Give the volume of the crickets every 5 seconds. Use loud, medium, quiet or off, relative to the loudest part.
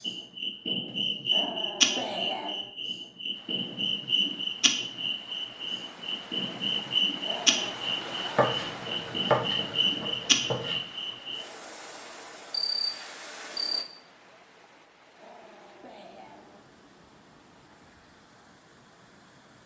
loud, loud, loud, off.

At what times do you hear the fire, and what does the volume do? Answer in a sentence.
You can't hear the fire here.